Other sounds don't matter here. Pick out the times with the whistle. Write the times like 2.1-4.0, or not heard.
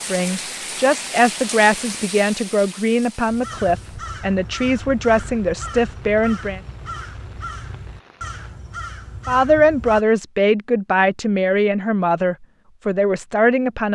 not heard.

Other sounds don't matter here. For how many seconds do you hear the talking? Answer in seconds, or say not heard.
11 s.